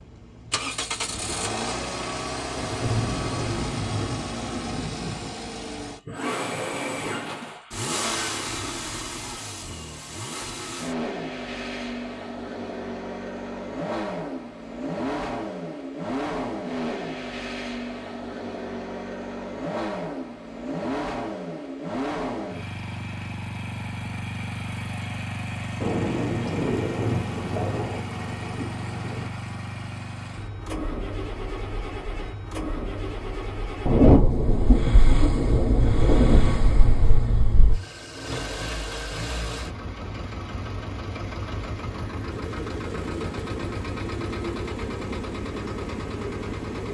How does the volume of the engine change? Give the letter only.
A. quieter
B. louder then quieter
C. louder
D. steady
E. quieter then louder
D.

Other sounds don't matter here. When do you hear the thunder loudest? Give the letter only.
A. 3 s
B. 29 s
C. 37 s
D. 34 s
D.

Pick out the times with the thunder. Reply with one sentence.
You can hear the thunder from 2.5 to 5.3 s, from 25.8 to 29.3 s and from 33.9 to 37.8 s.